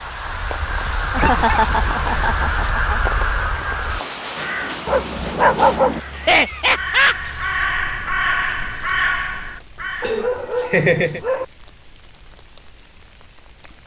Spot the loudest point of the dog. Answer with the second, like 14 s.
6 s.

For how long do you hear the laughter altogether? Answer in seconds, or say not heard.
4 s.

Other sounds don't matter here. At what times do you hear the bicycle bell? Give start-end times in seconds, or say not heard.
not heard.